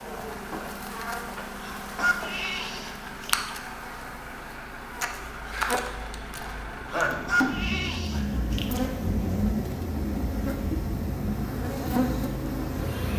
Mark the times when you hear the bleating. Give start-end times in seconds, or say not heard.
1.6-3.5, 6.8-8.8.